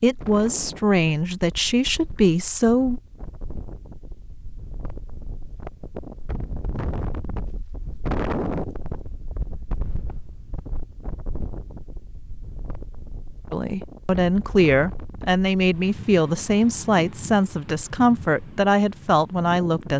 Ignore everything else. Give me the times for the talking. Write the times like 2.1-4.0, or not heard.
0.0-3.0, 13.5-19.9.